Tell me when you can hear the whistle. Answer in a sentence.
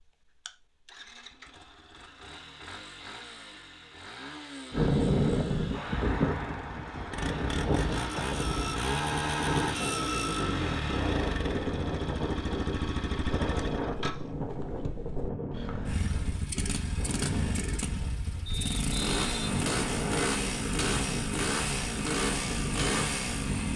You can hear the whistle from 18.4 to 20.4 s.